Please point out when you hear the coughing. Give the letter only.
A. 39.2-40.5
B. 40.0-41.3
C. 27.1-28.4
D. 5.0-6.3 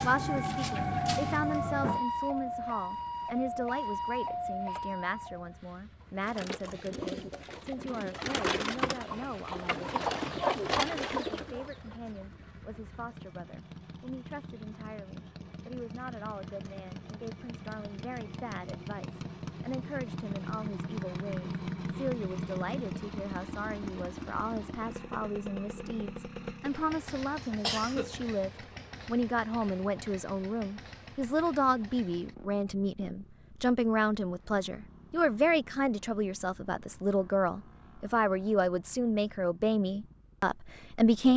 C.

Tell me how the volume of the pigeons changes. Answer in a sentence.
The volume of the pigeons goes up.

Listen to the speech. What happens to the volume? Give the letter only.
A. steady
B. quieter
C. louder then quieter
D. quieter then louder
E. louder
D.